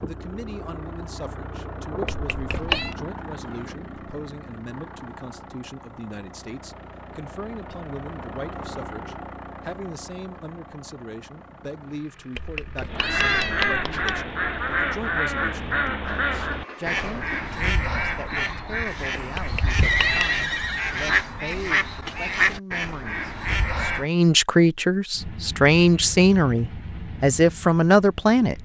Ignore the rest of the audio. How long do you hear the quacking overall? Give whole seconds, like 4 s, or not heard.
11 s.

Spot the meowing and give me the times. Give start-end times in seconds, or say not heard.
2.0-3.0, 12.3-14.2, 19.4-20.4.